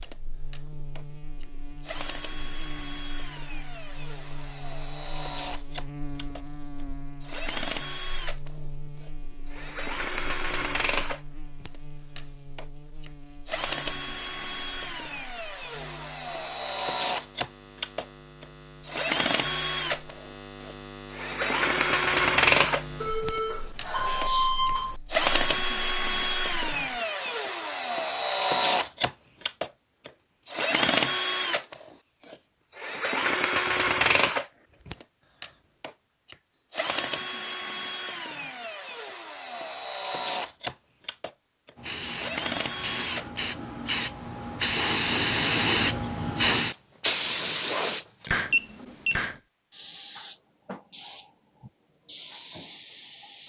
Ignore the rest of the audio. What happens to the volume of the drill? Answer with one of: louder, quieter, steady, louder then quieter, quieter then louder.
louder then quieter.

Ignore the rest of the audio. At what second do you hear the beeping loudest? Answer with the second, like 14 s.
24 s.